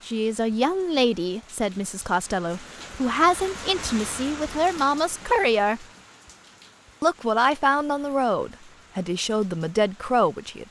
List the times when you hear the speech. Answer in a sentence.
You can hear the speech from 0.1 to 5.8 s and from 7.0 to 10.6 s.